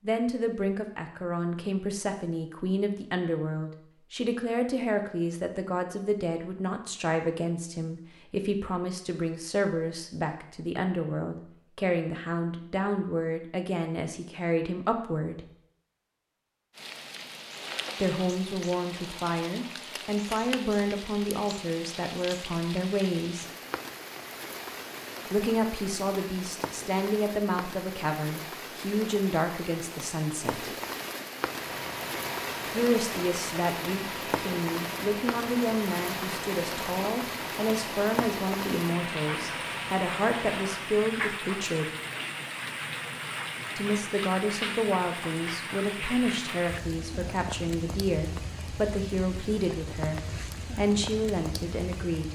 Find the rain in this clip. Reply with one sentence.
The rain can be heard from 16.8 to 52.2 s.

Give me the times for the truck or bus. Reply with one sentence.
You can hear the truck or bus from 31.4 to 41.0 s.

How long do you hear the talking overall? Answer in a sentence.
The talking can be heard for 44 seconds in total.